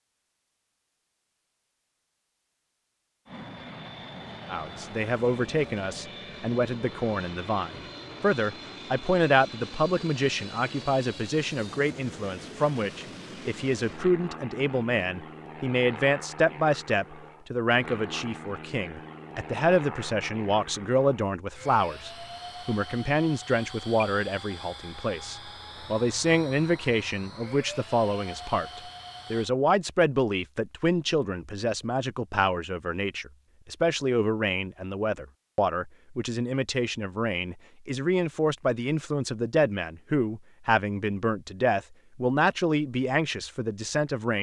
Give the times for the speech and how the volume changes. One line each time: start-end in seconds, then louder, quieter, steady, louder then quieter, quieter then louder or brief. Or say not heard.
4.5-44.3 steady.